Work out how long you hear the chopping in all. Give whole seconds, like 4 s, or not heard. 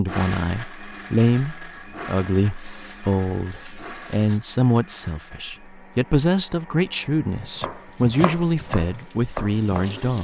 3 s.